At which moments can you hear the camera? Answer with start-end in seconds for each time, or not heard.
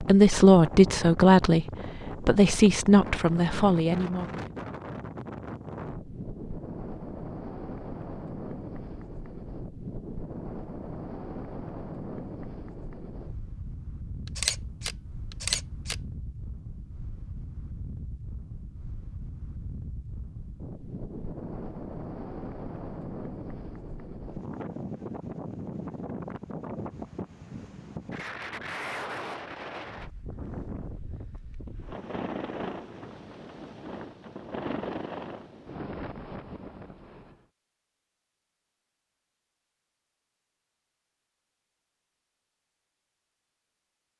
14.2-15.9.